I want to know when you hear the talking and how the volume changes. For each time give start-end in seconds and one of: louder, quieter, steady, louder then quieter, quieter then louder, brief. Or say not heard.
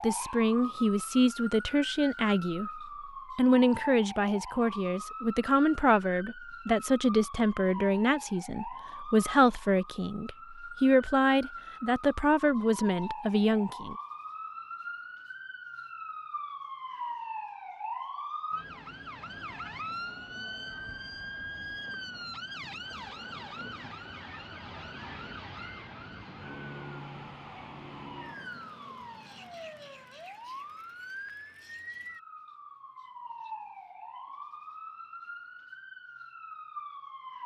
0.0-13.9 steady.